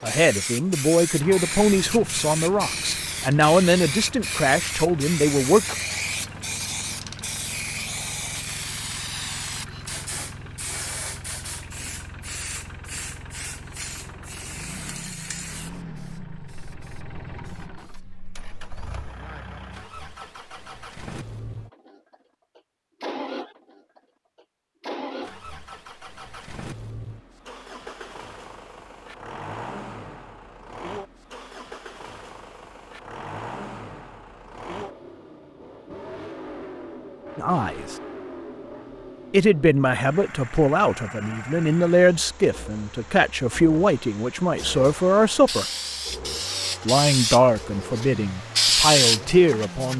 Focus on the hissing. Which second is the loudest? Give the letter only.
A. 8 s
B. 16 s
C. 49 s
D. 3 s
C.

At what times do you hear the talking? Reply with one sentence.
The talking can be heard from 0.0 to 5.7 s, from 37.4 to 38.0 s, from 39.3 to 45.6 s and from 46.8 to 49.9 s.